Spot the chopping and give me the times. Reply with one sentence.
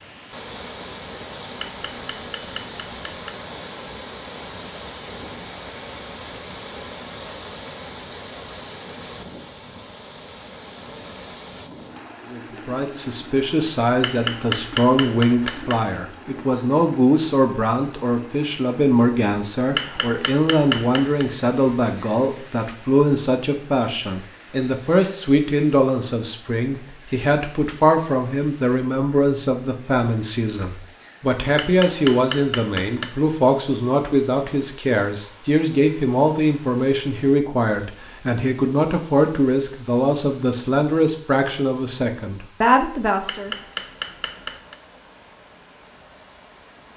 You can hear the chopping from 1.6 to 3.5 s, from 14.0 to 16.0 s, from 19.8 to 21.2 s, from 31.6 to 33.1 s and from 43.2 to 44.8 s.